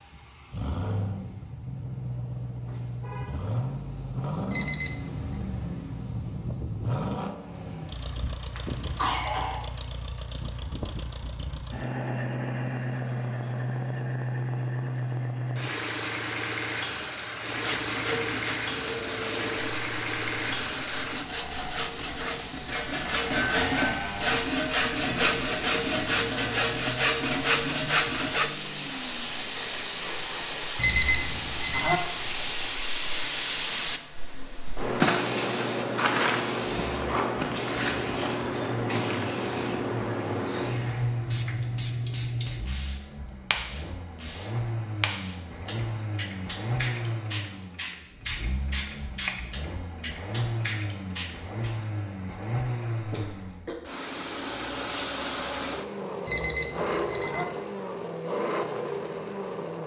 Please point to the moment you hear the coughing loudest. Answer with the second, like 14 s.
9 s.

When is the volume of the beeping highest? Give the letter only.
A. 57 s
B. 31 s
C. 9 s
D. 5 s
B.